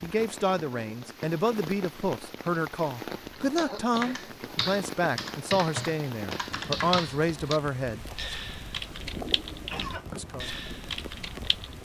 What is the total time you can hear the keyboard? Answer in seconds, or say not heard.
8 s.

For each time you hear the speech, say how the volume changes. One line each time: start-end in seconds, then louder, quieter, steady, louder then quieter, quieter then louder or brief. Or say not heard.
0.0-8.1 steady
10.1-10.5 brief.